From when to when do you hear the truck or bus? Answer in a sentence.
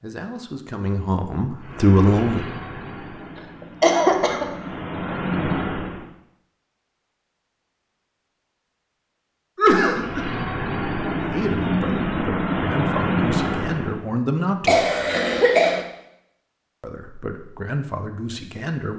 The truck or bus can be heard from 1.6 to 6.0 s and from 9.8 to 14.1 s.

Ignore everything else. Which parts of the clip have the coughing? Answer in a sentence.
The coughing can be heard from 3.6 to 4.5 s, from 9.6 to 10.2 s and from 14.7 to 15.8 s.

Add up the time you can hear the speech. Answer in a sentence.
The speech can be heard for 8 seconds in total.